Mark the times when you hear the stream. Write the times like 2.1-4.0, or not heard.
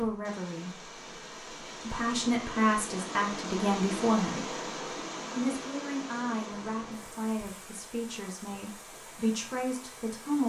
0.0-10.4.